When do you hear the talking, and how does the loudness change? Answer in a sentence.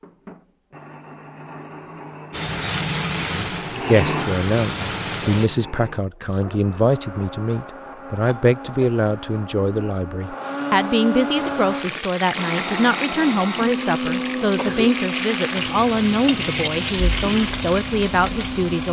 You can hear the talking from 3.2 to 18.8 s, at a steady volume.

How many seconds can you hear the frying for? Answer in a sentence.
You can hear the frying for 11 seconds altogether.